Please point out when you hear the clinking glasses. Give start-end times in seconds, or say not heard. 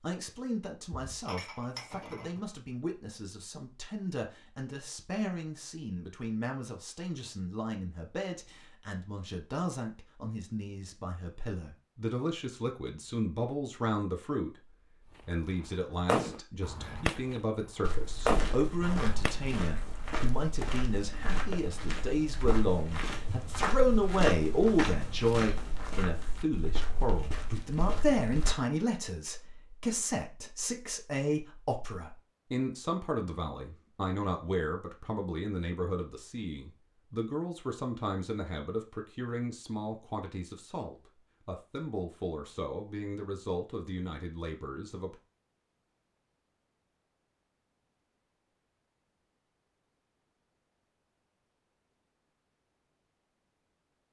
1.1-2.4.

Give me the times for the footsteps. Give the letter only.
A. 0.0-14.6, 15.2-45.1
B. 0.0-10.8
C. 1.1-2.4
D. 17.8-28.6
D.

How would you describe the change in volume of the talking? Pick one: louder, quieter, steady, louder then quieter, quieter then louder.
louder then quieter.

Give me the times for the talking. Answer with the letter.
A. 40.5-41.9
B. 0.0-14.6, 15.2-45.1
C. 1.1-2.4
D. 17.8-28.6
B.